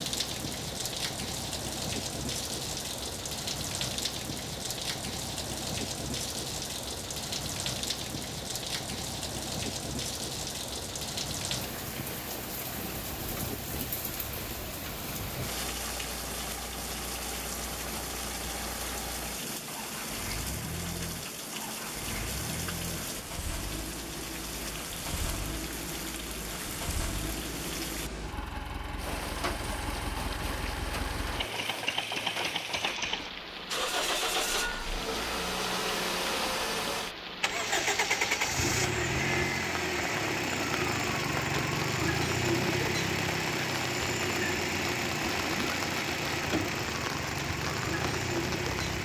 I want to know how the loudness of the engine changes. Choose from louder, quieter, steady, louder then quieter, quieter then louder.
louder.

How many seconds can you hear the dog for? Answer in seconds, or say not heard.
not heard.